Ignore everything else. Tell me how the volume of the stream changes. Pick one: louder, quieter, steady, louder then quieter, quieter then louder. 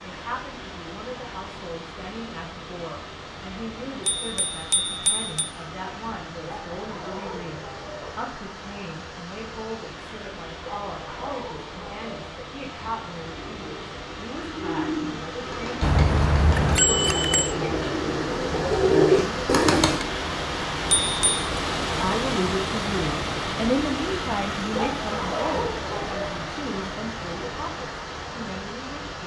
louder.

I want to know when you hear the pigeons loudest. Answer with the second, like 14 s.
19 s.